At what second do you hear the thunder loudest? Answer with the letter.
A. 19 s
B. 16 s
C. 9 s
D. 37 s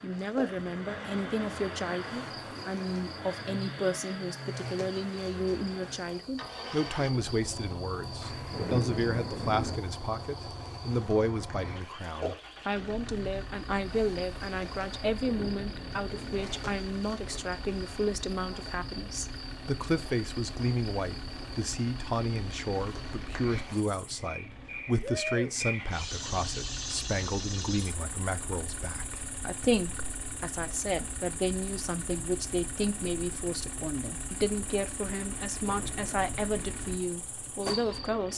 C.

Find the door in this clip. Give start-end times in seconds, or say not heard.
not heard.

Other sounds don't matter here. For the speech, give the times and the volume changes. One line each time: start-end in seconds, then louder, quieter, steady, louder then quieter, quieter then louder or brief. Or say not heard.
0.0-38.3 steady.